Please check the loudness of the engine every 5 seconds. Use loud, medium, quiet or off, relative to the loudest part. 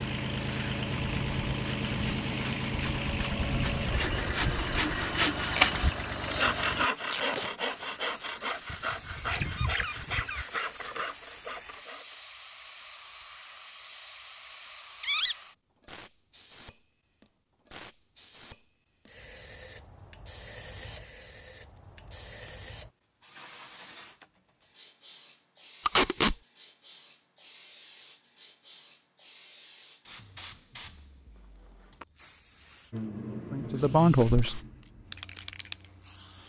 loud, loud, off, off, off, off, medium, quiet.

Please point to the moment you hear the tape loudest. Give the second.
26 s.